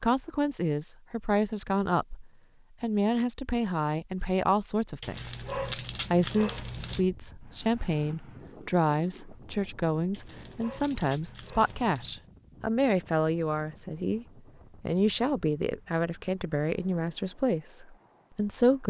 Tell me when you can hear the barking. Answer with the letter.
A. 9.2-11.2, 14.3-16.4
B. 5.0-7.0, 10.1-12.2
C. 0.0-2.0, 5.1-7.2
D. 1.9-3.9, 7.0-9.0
B.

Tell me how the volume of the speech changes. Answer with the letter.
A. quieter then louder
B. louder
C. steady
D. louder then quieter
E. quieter
C.